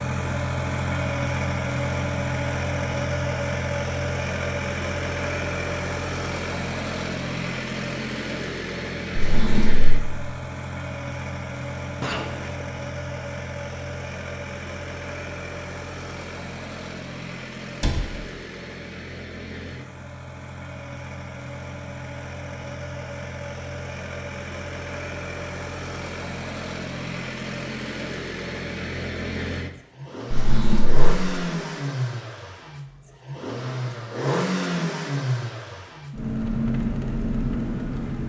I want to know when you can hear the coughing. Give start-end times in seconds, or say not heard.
12.0-12.7.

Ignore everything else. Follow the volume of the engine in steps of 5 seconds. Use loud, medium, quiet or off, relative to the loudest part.
loud, loud, medium, medium, medium, medium, loud, loud.